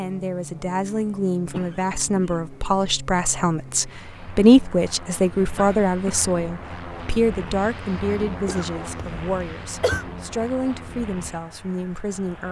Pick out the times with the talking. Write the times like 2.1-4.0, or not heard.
0.0-12.4.